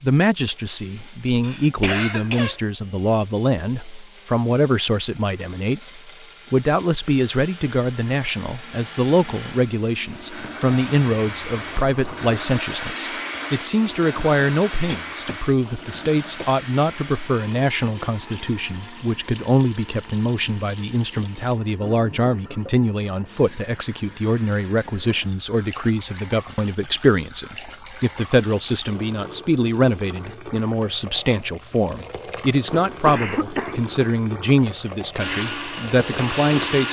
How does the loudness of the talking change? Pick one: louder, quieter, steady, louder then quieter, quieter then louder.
steady.